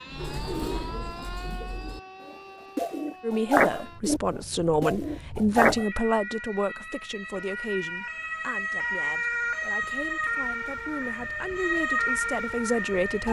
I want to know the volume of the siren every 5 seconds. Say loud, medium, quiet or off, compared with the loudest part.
quiet, loud, loud.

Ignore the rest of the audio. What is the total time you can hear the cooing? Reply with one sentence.
You can hear the cooing for 6 seconds altogether.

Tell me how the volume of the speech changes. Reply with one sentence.
The loudness of the speech goes down, then up.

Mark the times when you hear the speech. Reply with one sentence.
You can hear the speech from 3.2 to 13.2 s.